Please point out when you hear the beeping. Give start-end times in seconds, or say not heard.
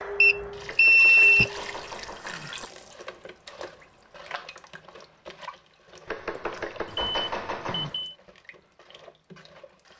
0.2-1.5, 6.8-8.2.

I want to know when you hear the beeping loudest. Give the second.
1 s.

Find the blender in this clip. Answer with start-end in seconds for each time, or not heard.
not heard.